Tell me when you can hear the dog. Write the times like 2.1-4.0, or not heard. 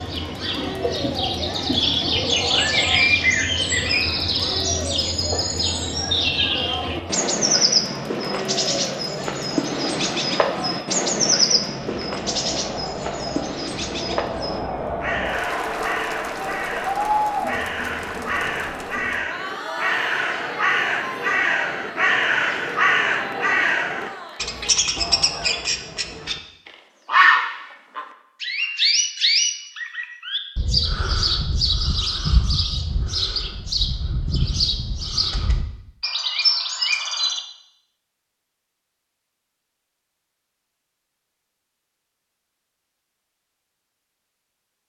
not heard.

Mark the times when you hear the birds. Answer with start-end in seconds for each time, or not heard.
0.0-37.4.